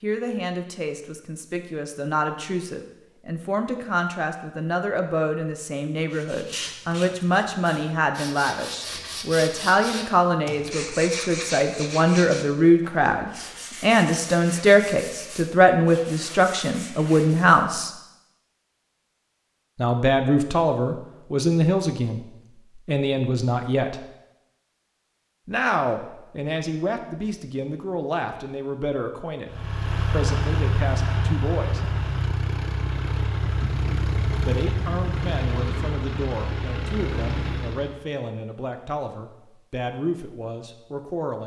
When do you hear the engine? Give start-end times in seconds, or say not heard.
29.4-38.0.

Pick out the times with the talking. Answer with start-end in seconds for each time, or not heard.
0.0-17.9, 19.8-24.0, 25.4-31.8, 34.3-41.4.